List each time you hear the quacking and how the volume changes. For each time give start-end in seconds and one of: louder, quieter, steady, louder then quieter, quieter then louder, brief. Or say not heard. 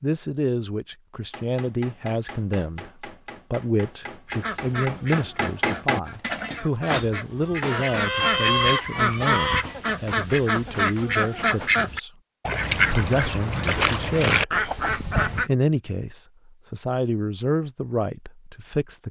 4.2-15.5 louder.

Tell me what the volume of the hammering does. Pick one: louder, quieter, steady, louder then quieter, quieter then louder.
louder then quieter.